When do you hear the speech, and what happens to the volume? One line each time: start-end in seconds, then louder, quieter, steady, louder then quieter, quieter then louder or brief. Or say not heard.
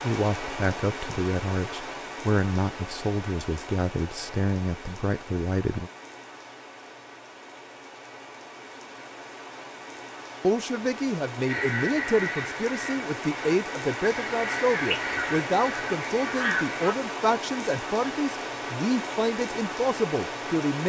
0.0-5.9 steady
10.4-20.8 steady.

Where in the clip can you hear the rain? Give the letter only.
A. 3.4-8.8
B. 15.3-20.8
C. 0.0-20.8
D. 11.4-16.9
C.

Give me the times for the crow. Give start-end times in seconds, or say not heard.
11.4-16.9.